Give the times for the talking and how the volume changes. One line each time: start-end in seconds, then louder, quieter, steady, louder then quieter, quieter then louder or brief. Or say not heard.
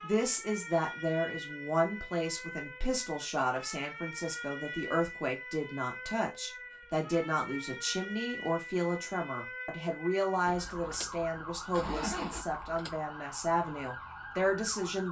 0.0-15.0 steady.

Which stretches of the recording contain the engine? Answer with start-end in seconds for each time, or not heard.
10.4-12.9.